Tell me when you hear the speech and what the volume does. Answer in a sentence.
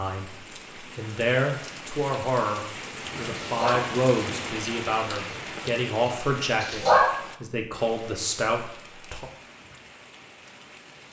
You can hear the speech from 0.0 to 9.3 s, at a steady volume.